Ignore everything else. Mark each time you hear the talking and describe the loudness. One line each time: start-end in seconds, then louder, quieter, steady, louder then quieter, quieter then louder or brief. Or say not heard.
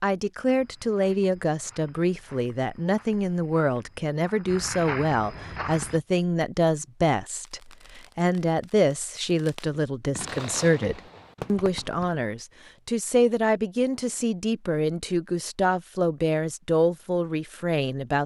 0.0-18.2 steady.